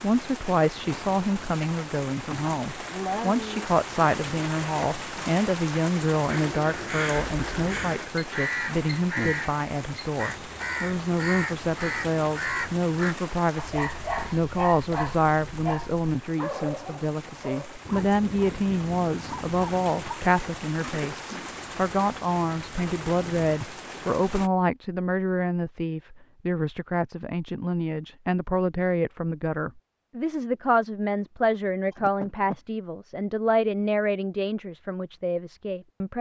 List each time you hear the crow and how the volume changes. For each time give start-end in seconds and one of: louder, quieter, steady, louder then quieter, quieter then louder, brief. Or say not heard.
6.2-13.2 steady.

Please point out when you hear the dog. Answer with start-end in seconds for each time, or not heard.
13.6-20.1.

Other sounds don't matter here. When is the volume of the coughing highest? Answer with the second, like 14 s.
3 s.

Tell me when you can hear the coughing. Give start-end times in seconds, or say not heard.
2.3-3.7, 20.8-21.6, 31.9-32.6.